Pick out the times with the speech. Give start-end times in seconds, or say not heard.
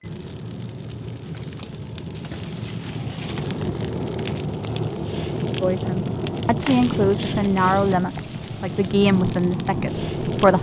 5.6-10.5.